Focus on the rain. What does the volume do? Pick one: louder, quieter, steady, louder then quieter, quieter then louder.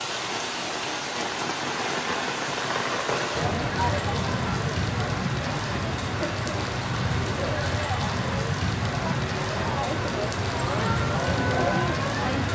steady.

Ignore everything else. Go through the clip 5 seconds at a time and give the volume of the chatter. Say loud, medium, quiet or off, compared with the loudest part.
loud, medium, loud.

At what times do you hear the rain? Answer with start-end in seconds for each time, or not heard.
0.0-12.4.